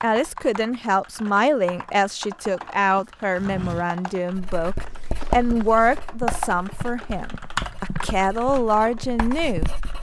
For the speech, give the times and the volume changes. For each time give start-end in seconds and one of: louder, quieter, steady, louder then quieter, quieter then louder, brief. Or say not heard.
0.0-9.7 steady.